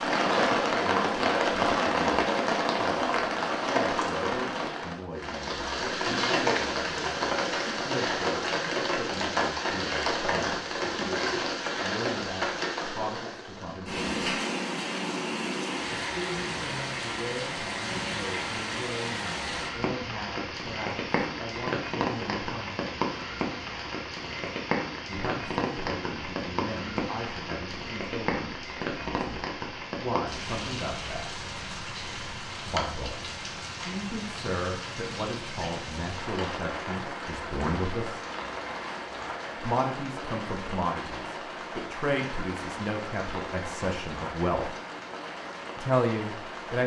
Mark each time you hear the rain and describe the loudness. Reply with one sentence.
You can hear the rain from 0.0 to 46.8 s, getting quieter.